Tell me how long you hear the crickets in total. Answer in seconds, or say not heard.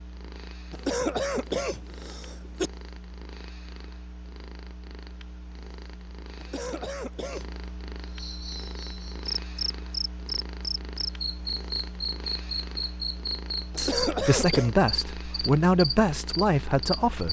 9 s.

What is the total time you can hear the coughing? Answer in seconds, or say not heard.
4 s.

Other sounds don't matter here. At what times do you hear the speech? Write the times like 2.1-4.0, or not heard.
13.8-17.2.